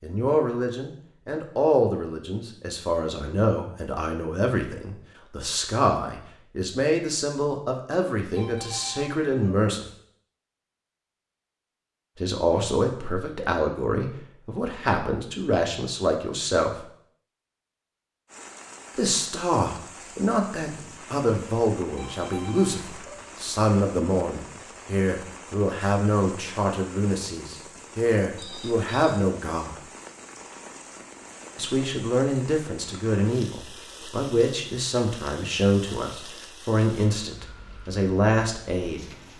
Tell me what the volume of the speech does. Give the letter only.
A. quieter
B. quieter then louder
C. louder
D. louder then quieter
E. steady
E.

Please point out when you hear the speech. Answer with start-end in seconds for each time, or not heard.
0.0-9.8, 12.2-16.9, 18.9-29.8, 31.6-39.0.